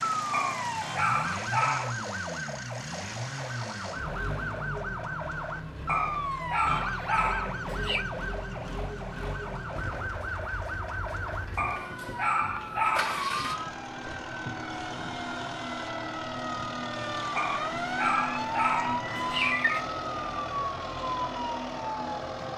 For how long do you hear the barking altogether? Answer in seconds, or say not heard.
8 s.